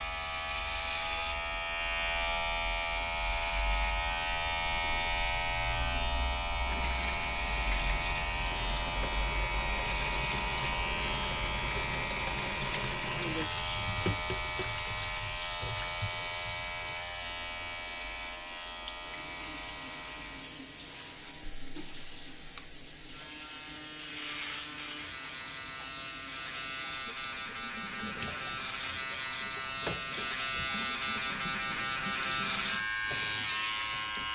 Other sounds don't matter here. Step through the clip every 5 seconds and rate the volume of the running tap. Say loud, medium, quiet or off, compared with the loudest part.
off, loud, loud, medium, medium, medium, medium.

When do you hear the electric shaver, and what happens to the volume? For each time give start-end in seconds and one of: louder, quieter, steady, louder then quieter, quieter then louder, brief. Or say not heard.
0.0-34.3 quieter then louder.